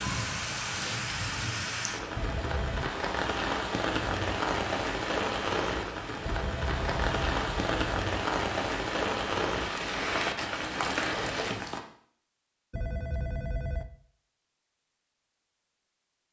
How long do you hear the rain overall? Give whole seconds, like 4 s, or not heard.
12 s.